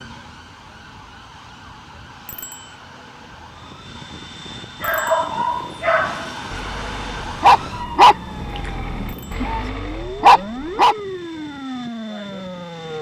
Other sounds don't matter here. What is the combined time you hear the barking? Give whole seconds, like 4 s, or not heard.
6 s.